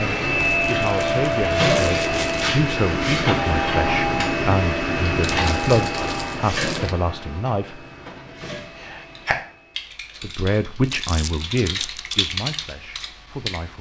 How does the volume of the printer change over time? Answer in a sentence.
The volume of the printer goes down.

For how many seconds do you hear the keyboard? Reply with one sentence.
You can hear the keyboard for 5 seconds altogether.